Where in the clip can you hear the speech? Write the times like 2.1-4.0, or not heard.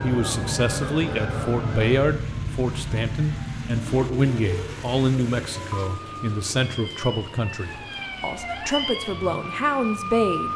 0.0-10.5.